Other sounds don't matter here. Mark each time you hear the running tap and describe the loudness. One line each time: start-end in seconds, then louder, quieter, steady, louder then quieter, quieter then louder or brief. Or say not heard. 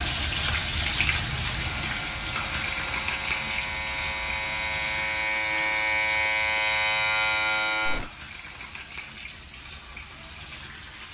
0.0-11.0 quieter.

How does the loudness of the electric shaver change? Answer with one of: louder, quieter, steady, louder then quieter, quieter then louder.
louder.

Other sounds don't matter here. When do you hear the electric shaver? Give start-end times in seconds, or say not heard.
1.5-8.1.